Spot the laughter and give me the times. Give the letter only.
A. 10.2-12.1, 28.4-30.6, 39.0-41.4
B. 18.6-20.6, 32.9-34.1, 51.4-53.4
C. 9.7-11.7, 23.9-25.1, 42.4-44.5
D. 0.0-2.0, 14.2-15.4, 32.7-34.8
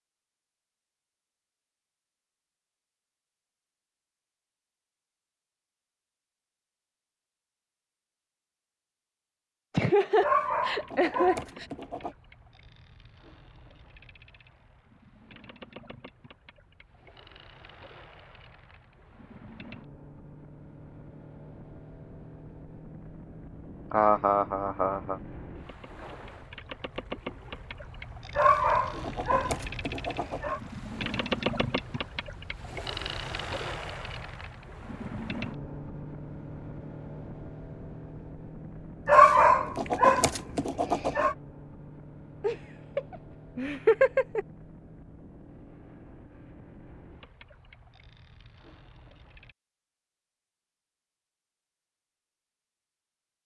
C.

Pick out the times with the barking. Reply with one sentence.
You can hear the barking from 10.2 to 12.1 s, from 28.4 to 30.6 s and from 39.0 to 41.4 s.